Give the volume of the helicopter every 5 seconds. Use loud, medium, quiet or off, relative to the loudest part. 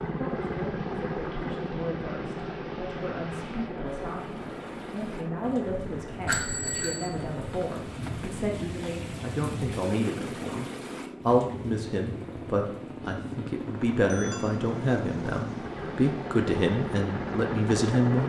loud, medium, medium, loud.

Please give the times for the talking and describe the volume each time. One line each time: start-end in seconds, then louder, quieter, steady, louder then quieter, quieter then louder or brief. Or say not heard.
0.1-18.2 louder.